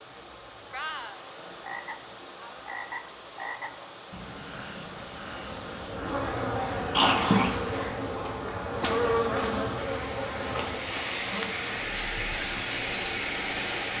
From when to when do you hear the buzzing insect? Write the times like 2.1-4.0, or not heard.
5.3-13.9.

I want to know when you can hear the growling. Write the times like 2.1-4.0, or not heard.
6.9-8.0.